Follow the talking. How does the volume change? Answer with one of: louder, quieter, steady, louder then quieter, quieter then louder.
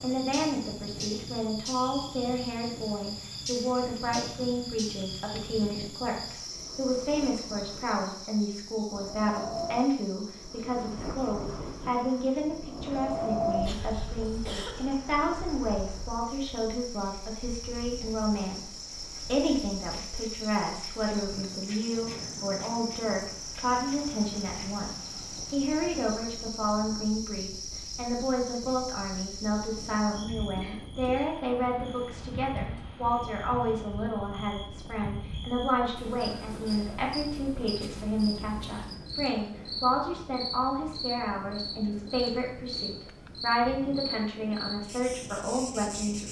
steady.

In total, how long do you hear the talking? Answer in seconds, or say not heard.
46 s.